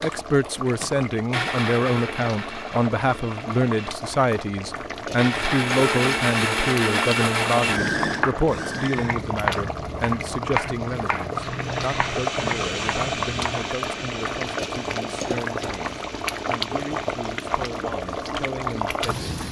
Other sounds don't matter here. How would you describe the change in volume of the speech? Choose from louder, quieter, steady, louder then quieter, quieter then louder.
quieter.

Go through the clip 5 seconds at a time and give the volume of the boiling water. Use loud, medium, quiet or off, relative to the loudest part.
medium, loud, loud, loud.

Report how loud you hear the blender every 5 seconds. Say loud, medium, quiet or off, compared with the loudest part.
medium, loud, medium, quiet.